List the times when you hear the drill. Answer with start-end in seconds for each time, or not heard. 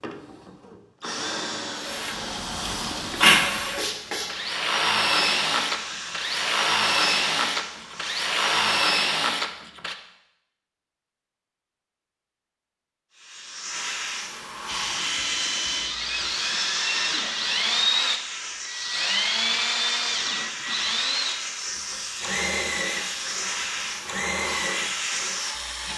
0.0-9.9, 14.7-25.9.